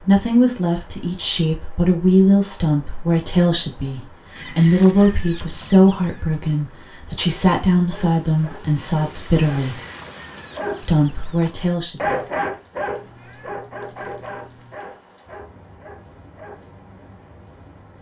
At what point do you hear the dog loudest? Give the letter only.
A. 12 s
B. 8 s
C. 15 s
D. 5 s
A.